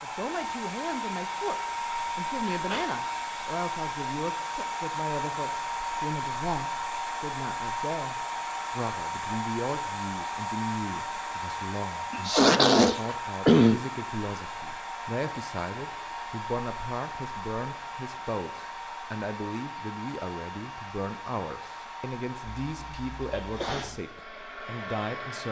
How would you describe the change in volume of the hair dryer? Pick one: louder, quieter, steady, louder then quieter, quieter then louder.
quieter.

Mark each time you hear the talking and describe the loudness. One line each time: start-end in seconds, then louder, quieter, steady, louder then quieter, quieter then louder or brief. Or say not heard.
0.0-25.4 steady.